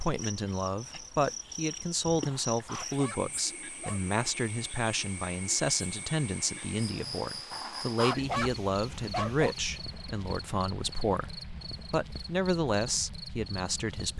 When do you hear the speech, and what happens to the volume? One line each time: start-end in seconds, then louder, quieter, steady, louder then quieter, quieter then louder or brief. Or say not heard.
0.0-14.1 steady.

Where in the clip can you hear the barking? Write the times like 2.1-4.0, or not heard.
2.2-4.2, 7.5-9.6.